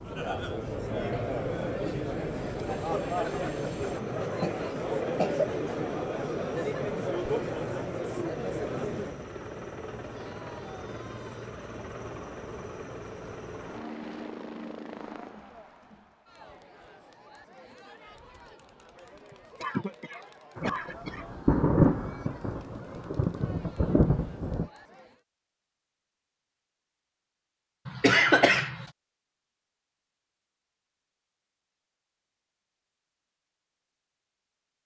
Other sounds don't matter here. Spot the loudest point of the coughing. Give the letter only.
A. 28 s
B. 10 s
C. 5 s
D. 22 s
A.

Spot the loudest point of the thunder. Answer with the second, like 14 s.
22 s.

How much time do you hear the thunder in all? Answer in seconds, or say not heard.
4 s.